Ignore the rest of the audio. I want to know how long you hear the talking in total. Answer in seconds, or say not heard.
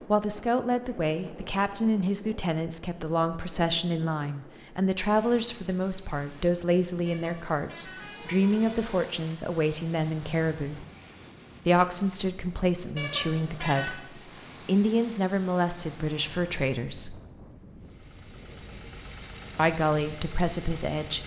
18 s.